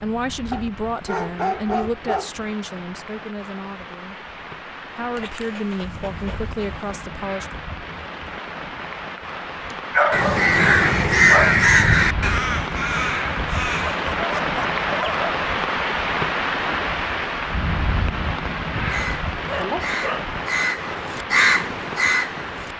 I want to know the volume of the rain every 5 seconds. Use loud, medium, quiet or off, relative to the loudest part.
quiet, medium, loud, loud, medium.